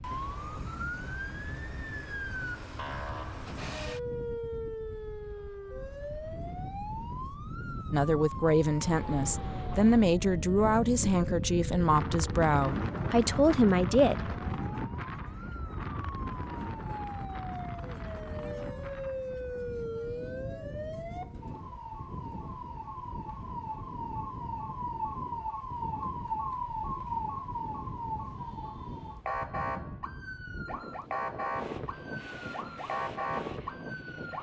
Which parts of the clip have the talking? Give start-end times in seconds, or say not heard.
7.9-14.3.